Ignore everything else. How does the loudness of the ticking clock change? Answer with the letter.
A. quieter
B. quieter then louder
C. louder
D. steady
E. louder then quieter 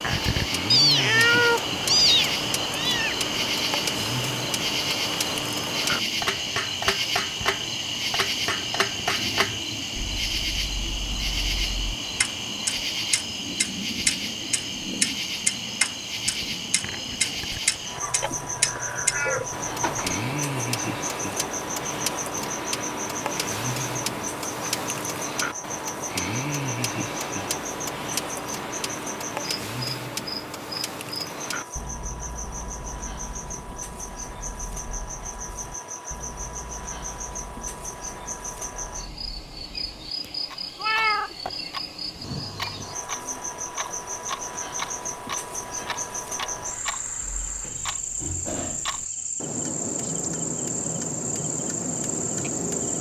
B.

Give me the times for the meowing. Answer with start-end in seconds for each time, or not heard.
0.7-3.1, 18.0-20.1, 40.8-41.4.